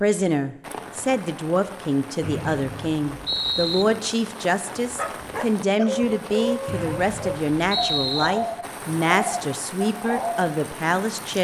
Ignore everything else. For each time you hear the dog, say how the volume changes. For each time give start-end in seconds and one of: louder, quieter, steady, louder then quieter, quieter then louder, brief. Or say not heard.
4.8-10.5 steady.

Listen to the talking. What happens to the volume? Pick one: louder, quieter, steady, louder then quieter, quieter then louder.
steady.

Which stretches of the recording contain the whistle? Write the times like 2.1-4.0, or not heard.
2.2-3.9, 6.7-8.3.